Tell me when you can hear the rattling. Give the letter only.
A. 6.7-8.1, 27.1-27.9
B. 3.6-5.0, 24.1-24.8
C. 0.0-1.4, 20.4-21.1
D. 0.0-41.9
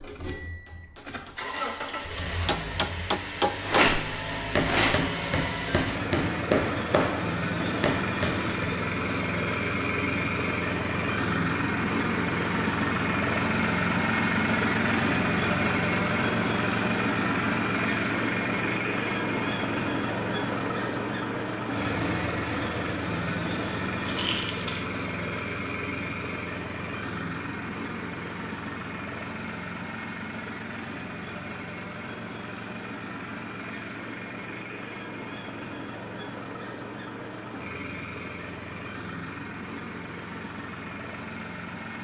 B.